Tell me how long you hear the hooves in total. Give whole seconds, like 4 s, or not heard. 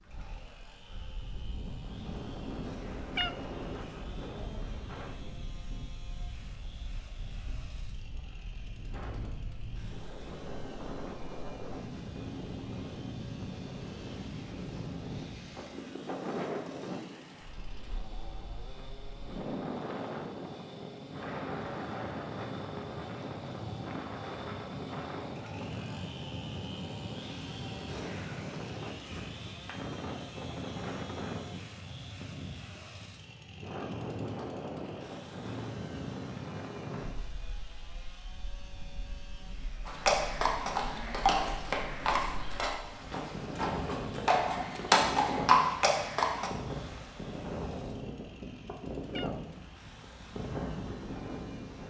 7 s.